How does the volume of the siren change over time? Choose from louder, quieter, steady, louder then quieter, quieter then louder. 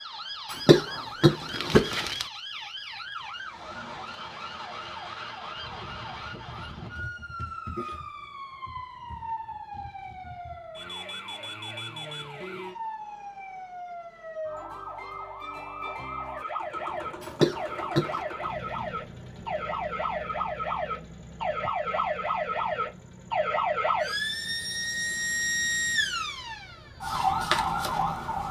louder.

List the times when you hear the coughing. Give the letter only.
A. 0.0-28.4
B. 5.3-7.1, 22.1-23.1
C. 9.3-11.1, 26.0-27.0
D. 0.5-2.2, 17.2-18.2
D.